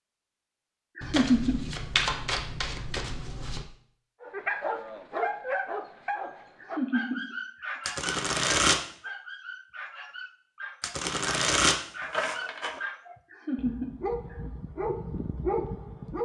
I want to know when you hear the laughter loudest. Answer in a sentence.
The volume of the laughter peaks at 1 second.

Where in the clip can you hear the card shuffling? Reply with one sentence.
You can hear the card shuffling from 1.0 to 3.6 s, from 7.8 to 8.8 s and from 10.8 to 12.8 s.